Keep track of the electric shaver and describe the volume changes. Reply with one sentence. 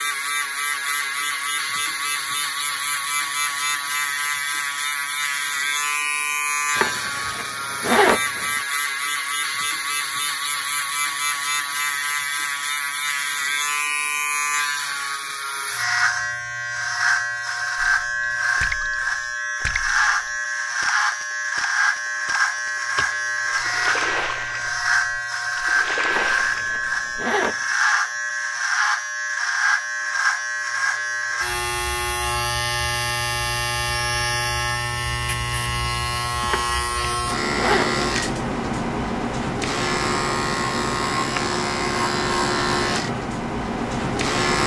The volume of the electric shaver stays about the same.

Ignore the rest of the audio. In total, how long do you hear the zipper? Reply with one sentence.
The zipper can be heard for 5 seconds in total.